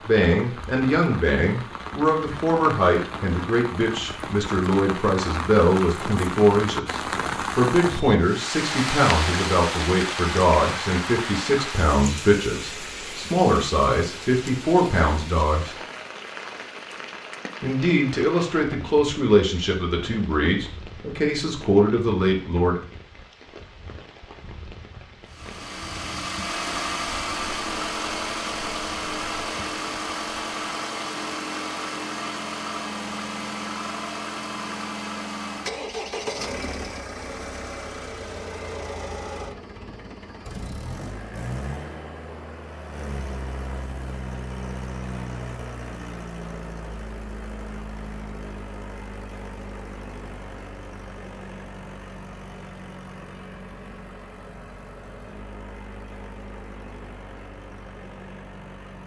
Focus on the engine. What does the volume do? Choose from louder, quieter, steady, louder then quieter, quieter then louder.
quieter.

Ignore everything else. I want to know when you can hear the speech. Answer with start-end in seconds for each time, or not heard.
0.1-15.8, 17.6-22.8.